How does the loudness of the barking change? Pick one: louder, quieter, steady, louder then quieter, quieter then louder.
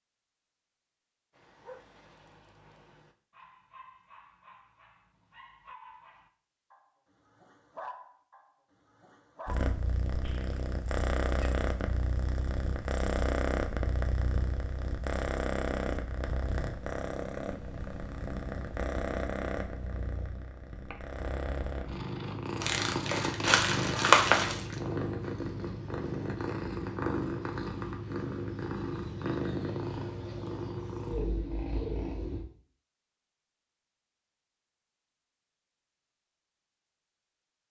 louder.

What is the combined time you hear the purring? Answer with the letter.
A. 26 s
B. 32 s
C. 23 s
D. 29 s
C.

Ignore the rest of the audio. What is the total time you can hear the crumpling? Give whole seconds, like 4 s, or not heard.
2 s.